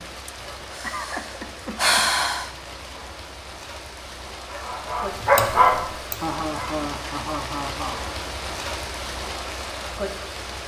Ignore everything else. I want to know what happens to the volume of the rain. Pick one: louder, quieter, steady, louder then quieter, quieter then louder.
louder.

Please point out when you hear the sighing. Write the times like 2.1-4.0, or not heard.
0.2-2.5.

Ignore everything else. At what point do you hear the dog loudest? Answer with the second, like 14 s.
5 s.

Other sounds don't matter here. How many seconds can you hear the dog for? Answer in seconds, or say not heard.
2 s.